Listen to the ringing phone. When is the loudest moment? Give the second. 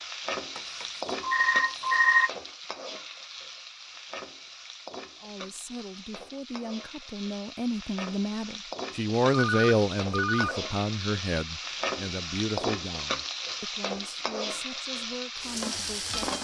2 s.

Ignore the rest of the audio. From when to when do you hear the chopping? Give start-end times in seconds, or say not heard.
not heard.